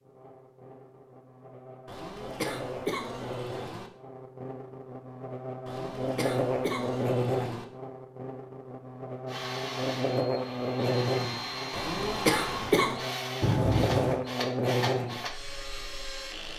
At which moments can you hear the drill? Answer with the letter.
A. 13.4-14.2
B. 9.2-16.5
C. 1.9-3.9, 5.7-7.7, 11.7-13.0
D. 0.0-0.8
B.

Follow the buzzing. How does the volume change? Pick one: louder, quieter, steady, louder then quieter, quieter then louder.
louder.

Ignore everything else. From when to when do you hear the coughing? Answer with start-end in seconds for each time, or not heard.
1.9-3.9, 5.7-7.7, 11.7-13.0.